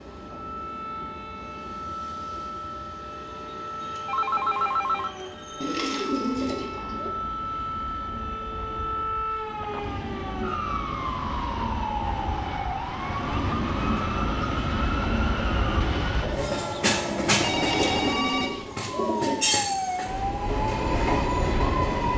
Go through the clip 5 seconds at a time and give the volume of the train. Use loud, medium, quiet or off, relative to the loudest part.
quiet, quiet, medium, loud, loud.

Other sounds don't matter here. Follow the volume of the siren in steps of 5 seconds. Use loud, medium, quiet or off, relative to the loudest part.
medium, loud, loud, loud, loud.